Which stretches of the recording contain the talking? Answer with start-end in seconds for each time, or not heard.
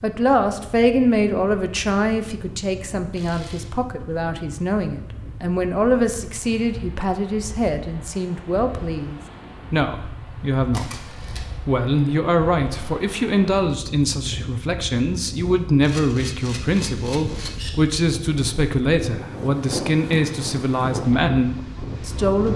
0.0-22.5.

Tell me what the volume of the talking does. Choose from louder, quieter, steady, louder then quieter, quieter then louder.
steady.